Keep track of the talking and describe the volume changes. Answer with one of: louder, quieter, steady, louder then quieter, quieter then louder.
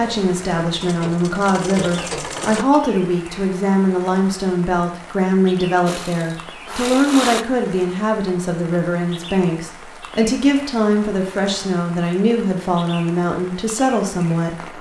steady.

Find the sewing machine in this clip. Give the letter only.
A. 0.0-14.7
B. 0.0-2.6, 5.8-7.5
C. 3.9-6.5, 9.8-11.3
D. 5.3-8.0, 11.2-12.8
B.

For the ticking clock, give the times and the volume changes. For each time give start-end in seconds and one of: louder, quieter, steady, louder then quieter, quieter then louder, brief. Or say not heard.
not heard.